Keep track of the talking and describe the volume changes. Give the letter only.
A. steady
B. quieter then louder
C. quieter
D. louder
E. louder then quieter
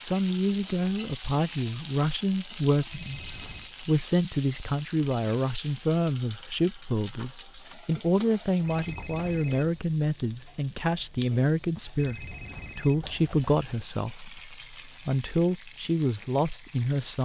A.